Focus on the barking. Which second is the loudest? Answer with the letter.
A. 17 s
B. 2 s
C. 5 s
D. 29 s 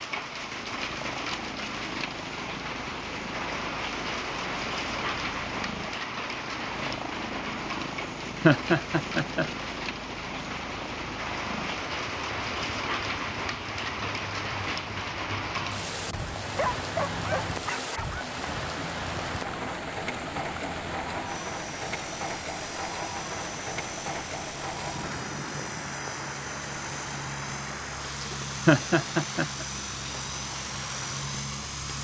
A.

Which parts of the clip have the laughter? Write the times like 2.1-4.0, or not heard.
8.4-9.4, 28.6-29.6.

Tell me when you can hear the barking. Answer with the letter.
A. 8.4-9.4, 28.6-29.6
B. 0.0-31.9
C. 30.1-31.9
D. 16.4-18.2
D.